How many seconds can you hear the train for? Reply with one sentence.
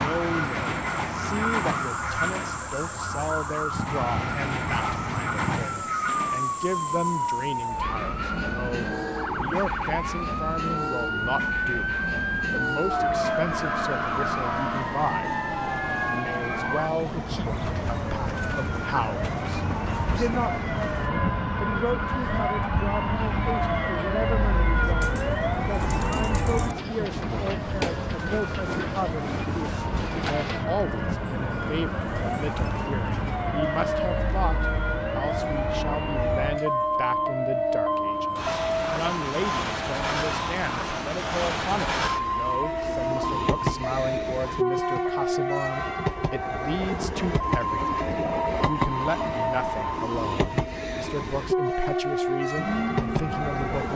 You can hear the train for 54 seconds altogether.